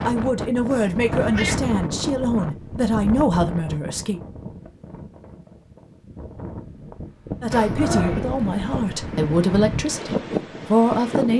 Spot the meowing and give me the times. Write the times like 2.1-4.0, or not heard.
0.7-1.6, 7.5-8.2.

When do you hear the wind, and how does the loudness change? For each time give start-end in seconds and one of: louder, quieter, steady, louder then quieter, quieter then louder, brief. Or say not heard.
0.0-11.3 quieter then louder.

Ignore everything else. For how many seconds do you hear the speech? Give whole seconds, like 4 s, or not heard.
8 s.